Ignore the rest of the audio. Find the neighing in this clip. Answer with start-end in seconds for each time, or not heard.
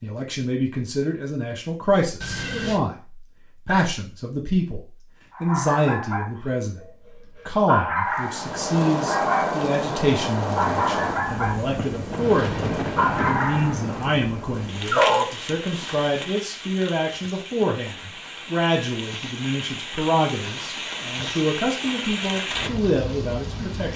2.2-2.8.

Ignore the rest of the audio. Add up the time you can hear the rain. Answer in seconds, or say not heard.
16 s.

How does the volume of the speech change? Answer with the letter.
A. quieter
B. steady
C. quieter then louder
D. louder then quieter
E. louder
B.